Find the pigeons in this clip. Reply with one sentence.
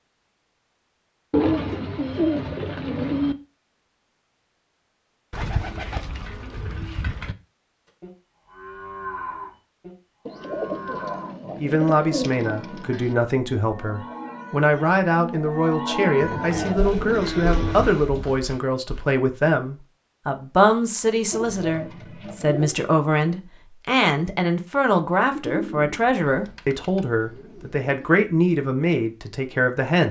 The pigeons can be heard from 1.3 to 3.4 s, from 5.3 to 7.3 s, from 10.2 to 13.2 s, from 16.2 to 18.0 s, from 21.3 to 22.9 s and from 25.3 to 28.1 s.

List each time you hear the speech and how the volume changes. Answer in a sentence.
The speech can be heard from 11.4 to 30.0 s, at a steady volume.